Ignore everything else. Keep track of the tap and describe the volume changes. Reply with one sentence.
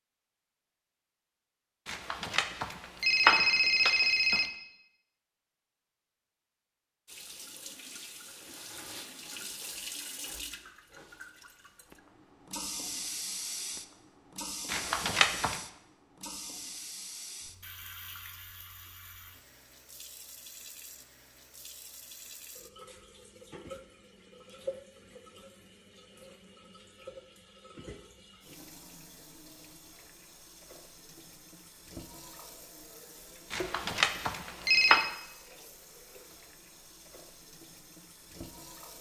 The loudness of the tap goes down.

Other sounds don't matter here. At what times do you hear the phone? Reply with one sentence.
The phone can be heard from 1.9 to 4.5 s, from 14.7 to 15.6 s and from 33.5 to 35.1 s.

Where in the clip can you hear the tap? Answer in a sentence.
The tap can be heard from 7.0 to 38.9 s.